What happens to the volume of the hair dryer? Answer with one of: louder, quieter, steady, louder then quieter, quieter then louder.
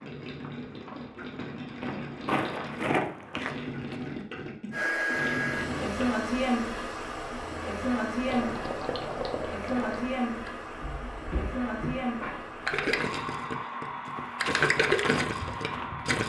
quieter.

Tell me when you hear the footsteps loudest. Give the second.
3 s.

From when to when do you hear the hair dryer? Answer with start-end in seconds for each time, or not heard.
4.7-16.2.